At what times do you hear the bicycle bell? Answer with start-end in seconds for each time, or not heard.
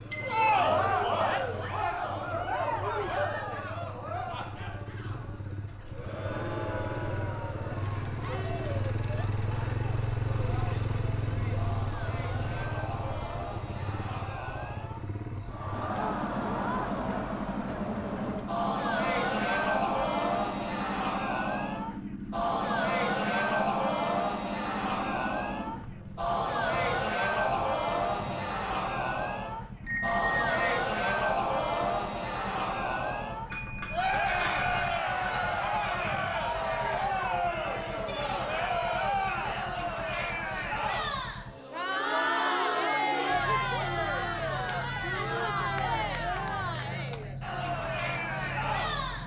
0.1-0.6, 29.8-30.8, 33.5-34.7.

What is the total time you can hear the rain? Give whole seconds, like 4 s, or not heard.
not heard.